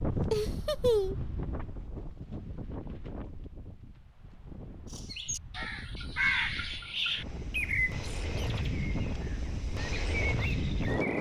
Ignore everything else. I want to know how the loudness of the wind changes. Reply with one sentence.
The volume of the wind goes down, then up.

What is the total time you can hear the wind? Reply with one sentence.
You can hear the wind for 11 seconds altogether.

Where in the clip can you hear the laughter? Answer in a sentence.
You can hear the laughter from 0.3 to 1.2 s.